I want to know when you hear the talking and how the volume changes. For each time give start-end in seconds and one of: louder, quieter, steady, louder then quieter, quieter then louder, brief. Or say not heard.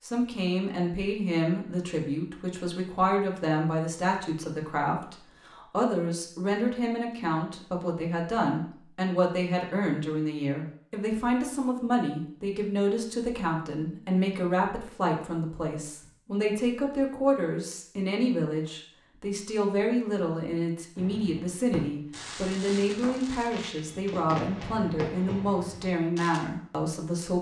0.0-27.3 steady.